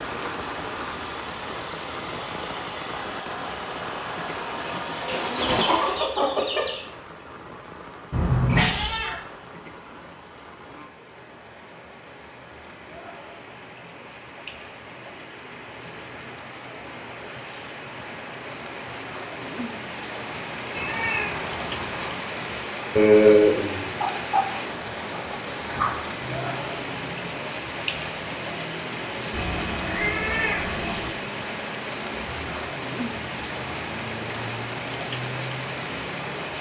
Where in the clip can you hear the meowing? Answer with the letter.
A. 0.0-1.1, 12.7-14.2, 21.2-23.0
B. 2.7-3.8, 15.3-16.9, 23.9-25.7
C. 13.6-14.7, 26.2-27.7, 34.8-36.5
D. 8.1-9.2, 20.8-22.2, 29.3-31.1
D.